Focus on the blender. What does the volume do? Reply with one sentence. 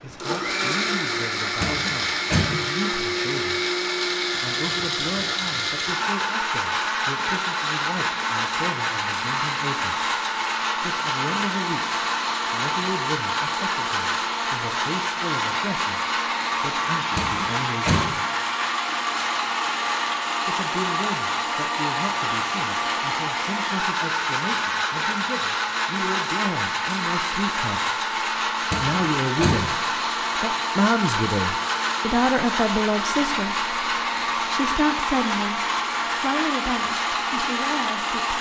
The volume of the blender stays about the same.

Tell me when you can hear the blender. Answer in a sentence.
You can hear the blender from 0.0 to 38.3 s.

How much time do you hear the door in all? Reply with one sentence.
You can hear the door for 3 seconds altogether.